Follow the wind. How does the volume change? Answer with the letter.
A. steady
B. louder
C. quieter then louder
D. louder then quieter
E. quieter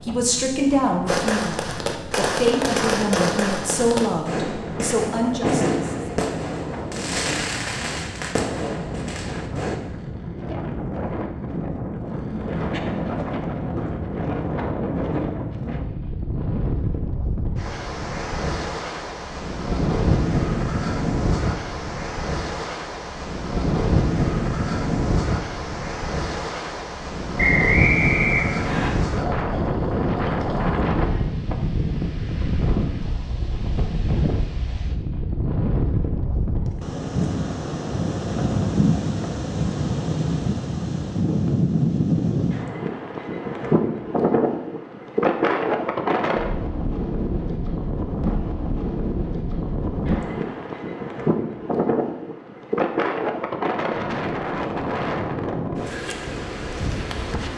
B.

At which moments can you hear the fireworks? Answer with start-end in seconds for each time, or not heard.
1.1-9.8.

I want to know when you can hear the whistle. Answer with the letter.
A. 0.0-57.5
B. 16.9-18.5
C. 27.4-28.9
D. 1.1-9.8
C.